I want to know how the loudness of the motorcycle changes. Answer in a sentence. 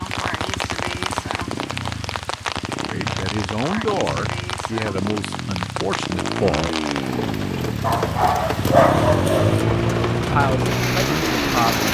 The volume of the motorcycle goes up.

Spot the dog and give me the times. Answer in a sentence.
You can hear the dog from 7.8 to 9.7 s.